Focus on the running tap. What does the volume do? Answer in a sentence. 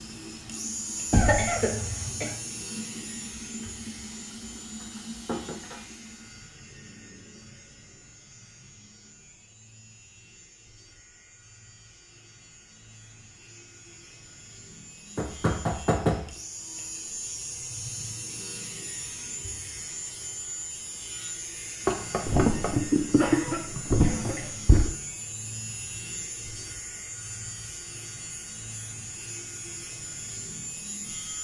The loudness of the running tap goes up.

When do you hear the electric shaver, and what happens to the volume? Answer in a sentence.
You can hear the electric shaver from 0.0 to 31.3 s, getting quieter then louder.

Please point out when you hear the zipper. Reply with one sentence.
The zipper can't be heard in this clip.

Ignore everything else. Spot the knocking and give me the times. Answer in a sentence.
The knocking can be heard from 1.1 to 1.6 s, from 15.2 to 16.4 s and from 21.9 to 22.8 s.